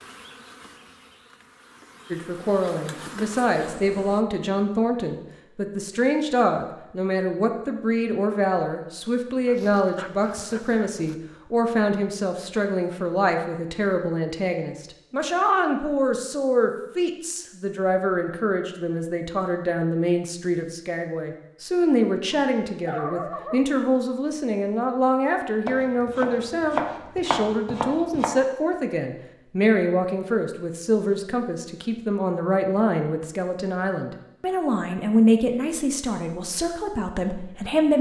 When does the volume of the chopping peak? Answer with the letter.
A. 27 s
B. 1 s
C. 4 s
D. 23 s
A.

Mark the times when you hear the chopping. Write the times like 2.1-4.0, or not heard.
25.6-28.3.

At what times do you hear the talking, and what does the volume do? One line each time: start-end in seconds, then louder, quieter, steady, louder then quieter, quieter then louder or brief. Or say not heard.
2.1-37.9 steady.